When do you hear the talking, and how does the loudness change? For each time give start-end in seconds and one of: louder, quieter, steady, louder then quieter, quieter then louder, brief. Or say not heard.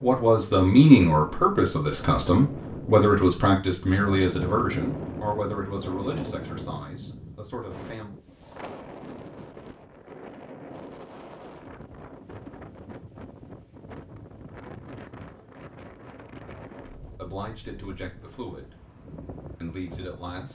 0.0-8.1 quieter
17.1-18.8 brief
19.6-20.5 brief.